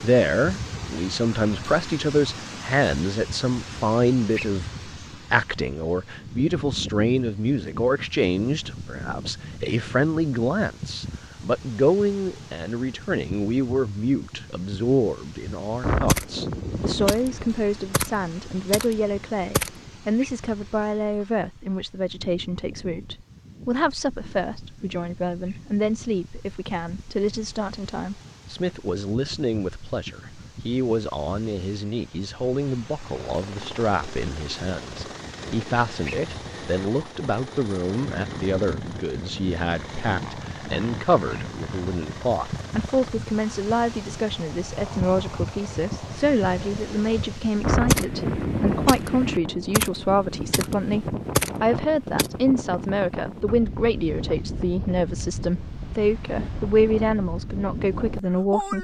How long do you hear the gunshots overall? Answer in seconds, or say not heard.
9 s.